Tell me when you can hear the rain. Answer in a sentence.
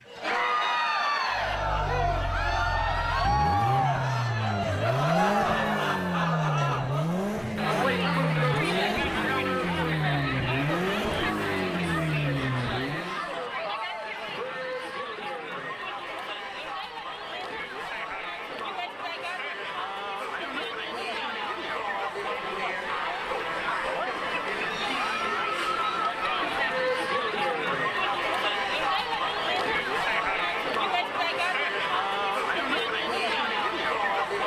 The rain can't be heard in this clip.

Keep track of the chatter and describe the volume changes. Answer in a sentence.
The loudness of the chatter goes down, then up.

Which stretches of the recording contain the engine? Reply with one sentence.
The engine can be heard from 1.3 to 13.2 s.